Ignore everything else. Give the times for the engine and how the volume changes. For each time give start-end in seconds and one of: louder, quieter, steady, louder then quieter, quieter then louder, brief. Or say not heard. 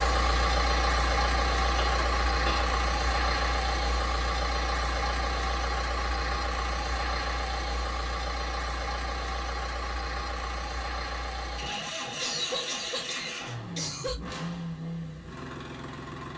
0.0-16.3 quieter.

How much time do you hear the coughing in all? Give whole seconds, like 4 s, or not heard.
3 s.